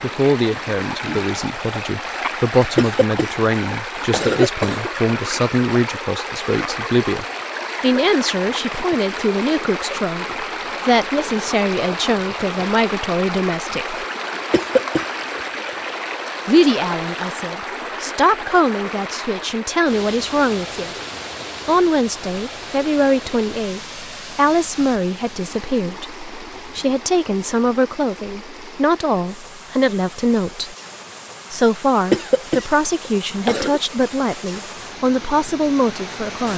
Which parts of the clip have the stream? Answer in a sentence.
The stream can be heard from 0.0 to 36.5 s.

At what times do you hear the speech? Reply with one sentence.
You can hear the speech from 0.0 to 14.1 s, from 16.4 to 20.9 s, from 21.6 to 30.8 s and from 31.5 to 36.5 s.